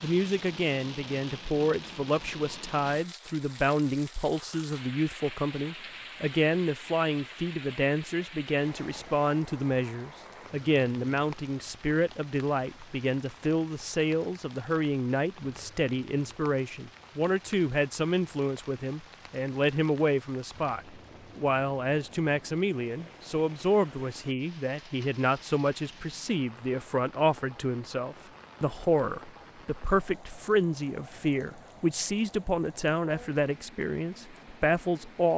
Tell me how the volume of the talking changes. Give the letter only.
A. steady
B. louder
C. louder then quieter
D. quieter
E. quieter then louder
A.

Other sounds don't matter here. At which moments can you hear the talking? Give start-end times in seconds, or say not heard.
0.0-35.3.